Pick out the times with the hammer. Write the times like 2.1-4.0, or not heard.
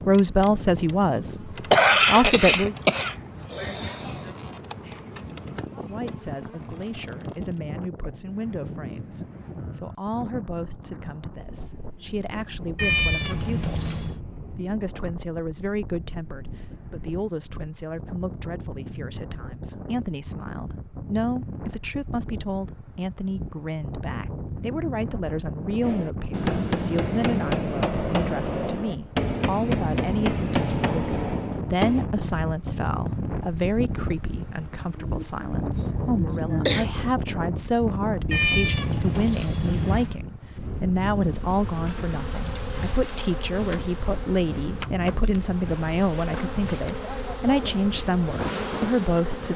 25.8-32.1.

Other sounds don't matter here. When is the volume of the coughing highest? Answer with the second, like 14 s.
2 s.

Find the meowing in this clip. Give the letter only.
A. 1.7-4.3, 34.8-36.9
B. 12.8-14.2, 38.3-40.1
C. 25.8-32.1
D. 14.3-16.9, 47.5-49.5
B.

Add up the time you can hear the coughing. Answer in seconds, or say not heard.
5 s.